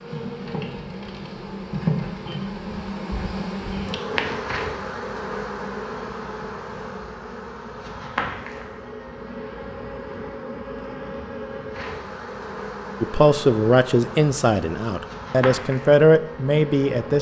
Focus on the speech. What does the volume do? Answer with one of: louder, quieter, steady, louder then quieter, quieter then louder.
quieter then louder.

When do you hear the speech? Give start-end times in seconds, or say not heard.
13.0-17.1.